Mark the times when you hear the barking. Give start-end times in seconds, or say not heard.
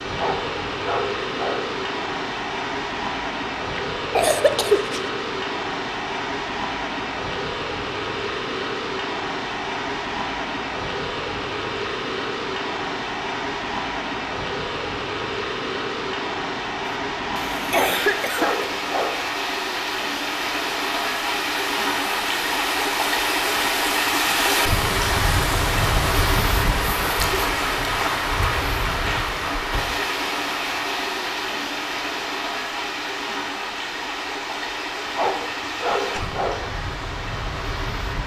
0.1-1.6, 17.7-19.2, 35.1-36.6.